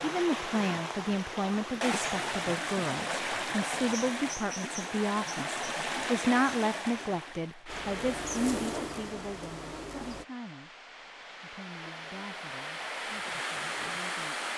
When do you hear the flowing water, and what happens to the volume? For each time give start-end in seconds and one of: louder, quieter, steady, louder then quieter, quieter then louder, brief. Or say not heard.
0.0-14.5 quieter then louder.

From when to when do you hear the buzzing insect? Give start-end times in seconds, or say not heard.
7.7-10.2.